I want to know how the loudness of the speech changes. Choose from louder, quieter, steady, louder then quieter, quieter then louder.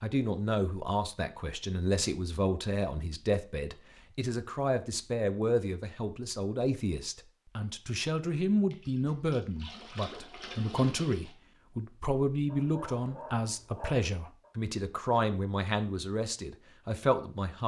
steady.